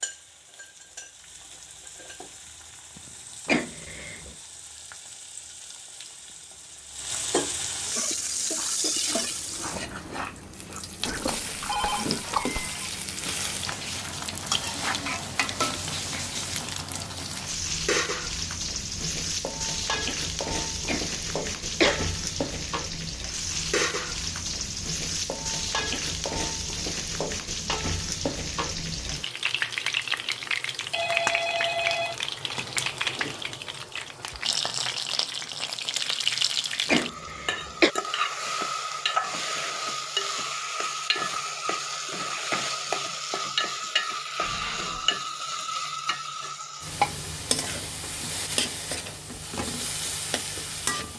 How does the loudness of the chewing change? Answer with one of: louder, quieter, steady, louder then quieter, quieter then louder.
louder.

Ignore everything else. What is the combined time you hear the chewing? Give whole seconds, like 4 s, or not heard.
5 s.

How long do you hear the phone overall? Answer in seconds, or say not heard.
3 s.